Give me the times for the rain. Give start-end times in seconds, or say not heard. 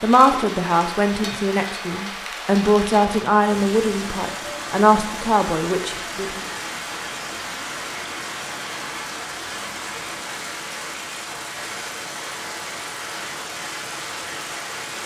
0.0-15.0.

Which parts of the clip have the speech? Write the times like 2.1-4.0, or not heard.
0.0-6.5.